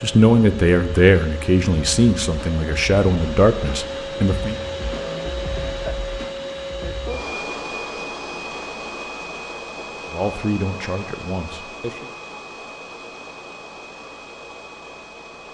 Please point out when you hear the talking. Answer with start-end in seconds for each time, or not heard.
0.0-4.5, 10.1-12.1.